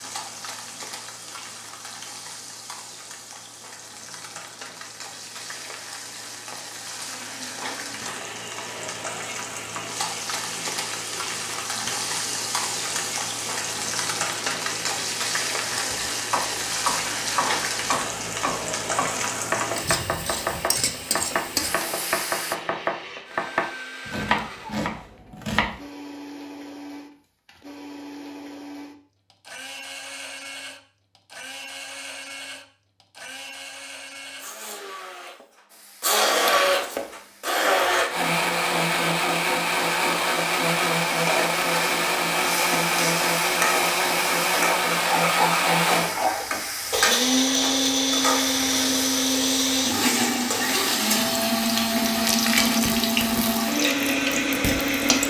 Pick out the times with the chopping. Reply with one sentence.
You can hear the chopping from 15.8 to 25.8 s.